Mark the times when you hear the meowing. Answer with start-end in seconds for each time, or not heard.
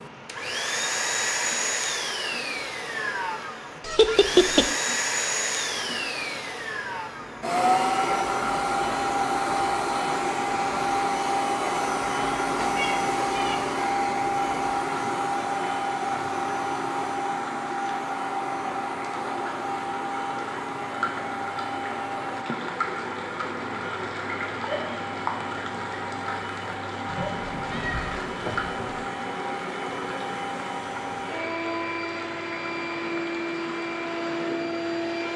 3.9-4.7, 12.6-13.6, 27.1-29.1.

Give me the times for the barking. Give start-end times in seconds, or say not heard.
not heard.